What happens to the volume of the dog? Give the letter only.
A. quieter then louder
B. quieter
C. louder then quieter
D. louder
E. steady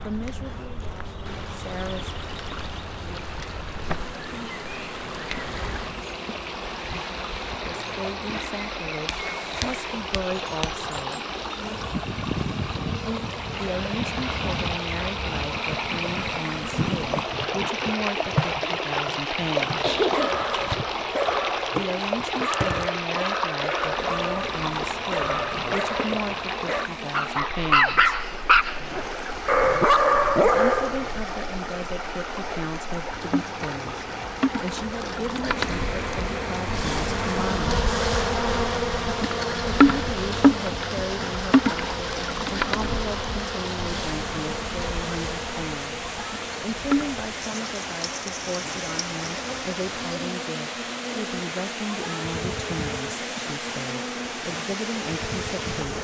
D.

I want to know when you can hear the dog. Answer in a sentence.
You can hear the dog from 19.9 to 31.2 s.